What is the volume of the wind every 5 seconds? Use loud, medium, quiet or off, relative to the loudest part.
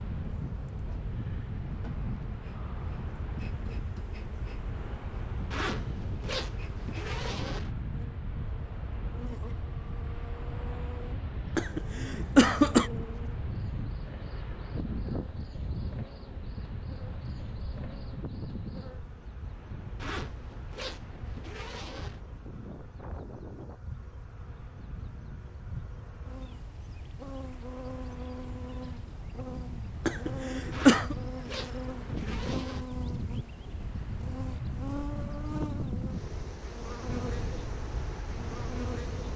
loud, loud, loud, loud, medium, medium, loud, loud.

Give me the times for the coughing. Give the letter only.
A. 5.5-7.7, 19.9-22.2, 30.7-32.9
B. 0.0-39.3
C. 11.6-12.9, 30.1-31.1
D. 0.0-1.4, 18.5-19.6
C.